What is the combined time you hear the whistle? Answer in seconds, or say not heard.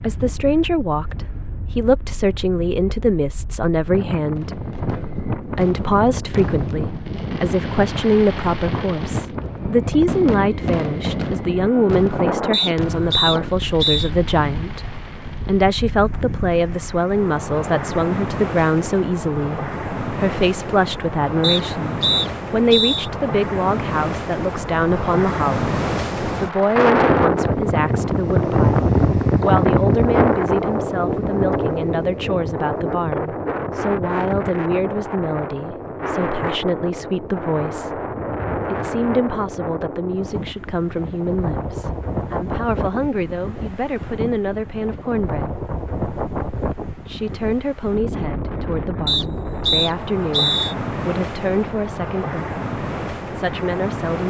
5 s.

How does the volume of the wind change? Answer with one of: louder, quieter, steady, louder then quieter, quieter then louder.
louder then quieter.